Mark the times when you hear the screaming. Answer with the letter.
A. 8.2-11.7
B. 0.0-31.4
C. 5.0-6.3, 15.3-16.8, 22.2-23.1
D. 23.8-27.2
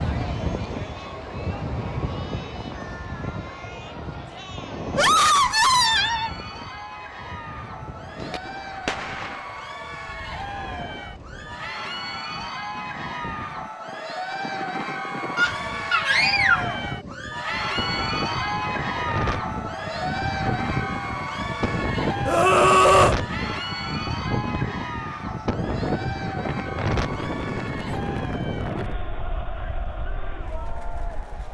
C.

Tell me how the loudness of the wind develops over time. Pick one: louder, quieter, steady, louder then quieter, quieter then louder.
quieter then louder.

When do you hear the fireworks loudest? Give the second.
9 s.